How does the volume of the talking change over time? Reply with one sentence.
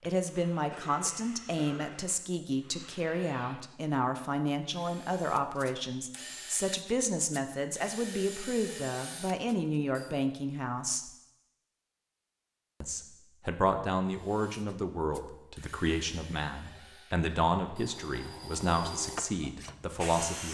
The volume of the talking stays about the same.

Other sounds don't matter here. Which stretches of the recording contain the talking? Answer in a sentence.
The talking can be heard from 0.1 to 11.1 s and from 12.8 to 20.4 s.